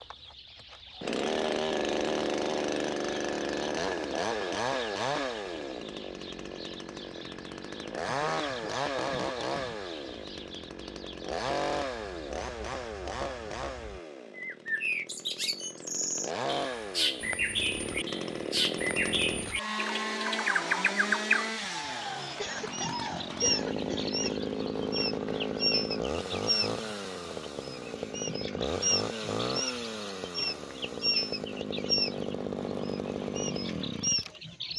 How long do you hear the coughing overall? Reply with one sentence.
The coughing can be heard for 4 seconds in total.